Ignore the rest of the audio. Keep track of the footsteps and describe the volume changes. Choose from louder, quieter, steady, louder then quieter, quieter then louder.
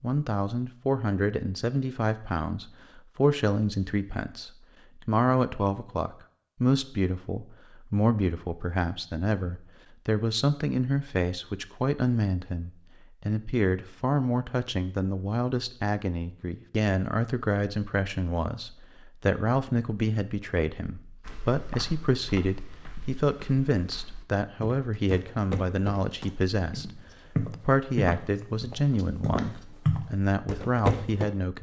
louder.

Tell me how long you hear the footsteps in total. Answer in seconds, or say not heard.
10 s.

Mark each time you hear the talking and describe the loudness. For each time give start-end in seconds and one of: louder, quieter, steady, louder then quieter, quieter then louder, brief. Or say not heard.
0.0-31.5 steady.